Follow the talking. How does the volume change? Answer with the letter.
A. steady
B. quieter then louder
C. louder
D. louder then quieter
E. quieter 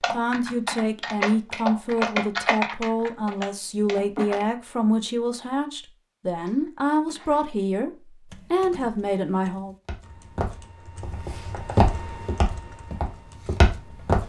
A.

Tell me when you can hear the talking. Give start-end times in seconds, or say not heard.
0.0-9.8.